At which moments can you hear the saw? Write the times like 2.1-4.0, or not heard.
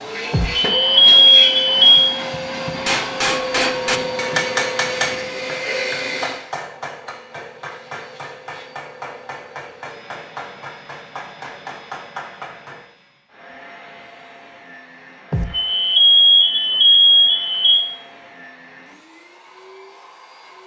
not heard.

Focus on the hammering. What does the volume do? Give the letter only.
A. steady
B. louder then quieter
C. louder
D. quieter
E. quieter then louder
D.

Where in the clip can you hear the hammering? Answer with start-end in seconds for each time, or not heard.
2.8-12.8.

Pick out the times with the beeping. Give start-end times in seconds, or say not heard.
0.3-2.1, 15.3-17.9.